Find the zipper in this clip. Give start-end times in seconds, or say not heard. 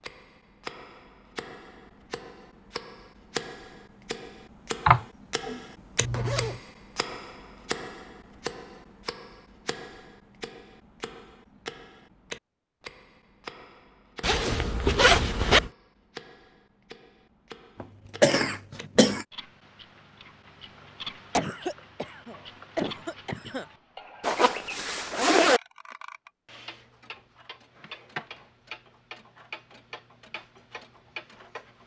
6.0-6.6, 14.2-15.7, 24.2-25.6.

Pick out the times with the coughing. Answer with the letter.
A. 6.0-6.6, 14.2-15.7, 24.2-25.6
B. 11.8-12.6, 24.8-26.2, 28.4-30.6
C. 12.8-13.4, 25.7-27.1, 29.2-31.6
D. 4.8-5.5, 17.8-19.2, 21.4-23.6
D.